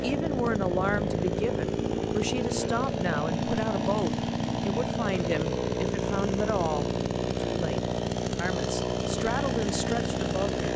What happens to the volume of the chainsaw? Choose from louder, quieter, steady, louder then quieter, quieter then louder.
steady.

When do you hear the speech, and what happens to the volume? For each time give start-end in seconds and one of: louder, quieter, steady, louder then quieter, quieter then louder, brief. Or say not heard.
0.0-10.6 steady.